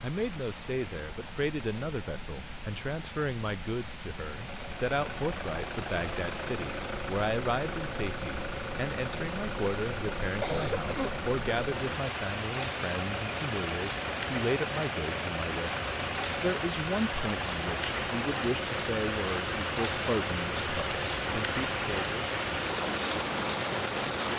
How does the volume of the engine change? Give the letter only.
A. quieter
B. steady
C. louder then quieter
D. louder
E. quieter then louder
B.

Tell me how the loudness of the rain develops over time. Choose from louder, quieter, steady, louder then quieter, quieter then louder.
louder.